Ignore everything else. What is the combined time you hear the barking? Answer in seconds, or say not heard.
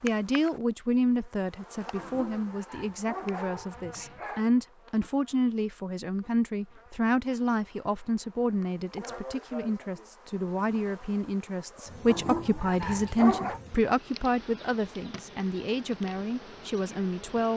4 s.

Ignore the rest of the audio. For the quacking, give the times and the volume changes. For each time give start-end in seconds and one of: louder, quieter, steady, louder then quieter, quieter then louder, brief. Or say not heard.
not heard.